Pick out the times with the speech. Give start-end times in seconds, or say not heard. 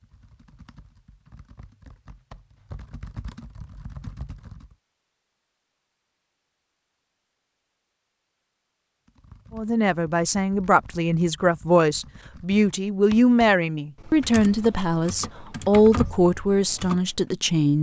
9.5-17.7.